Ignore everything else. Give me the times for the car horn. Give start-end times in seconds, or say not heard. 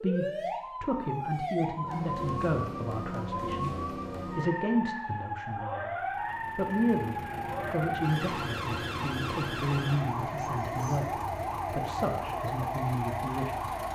not heard.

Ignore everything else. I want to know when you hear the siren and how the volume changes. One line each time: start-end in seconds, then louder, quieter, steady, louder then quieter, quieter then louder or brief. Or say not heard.
0.0-13.8 steady.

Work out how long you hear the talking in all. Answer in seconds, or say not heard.
13 s.